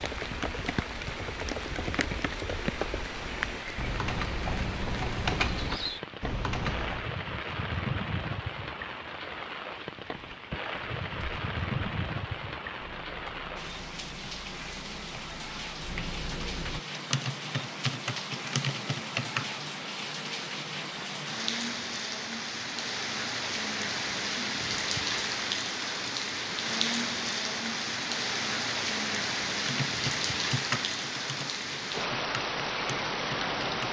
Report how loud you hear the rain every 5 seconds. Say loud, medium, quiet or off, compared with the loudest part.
medium, medium, medium, medium, loud, loud, loud.